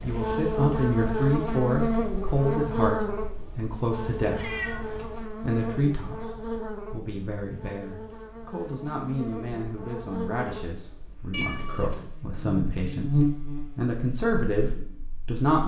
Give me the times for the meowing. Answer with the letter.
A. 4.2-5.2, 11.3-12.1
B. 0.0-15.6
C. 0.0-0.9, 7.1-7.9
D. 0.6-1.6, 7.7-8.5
A.